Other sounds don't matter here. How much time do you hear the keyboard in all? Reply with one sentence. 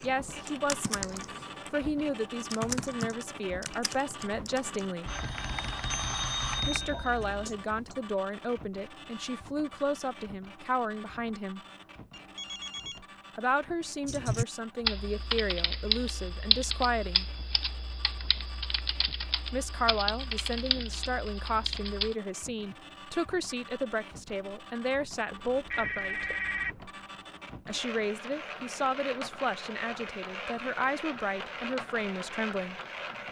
You can hear the keyboard for 16 seconds altogether.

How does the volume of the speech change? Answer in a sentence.
The loudness of the speech stays about the same.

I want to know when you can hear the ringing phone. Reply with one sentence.
You can hear the ringing phone from 5.0 to 7.5 s, from 12.1 to 13.0 s and from 25.3 to 26.8 s.